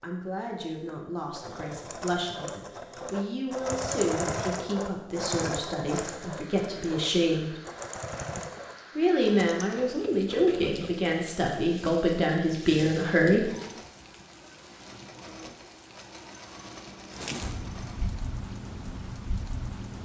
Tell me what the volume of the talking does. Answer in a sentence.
The volume of the talking goes up.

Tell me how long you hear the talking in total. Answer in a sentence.
The talking can be heard for 12 seconds in total.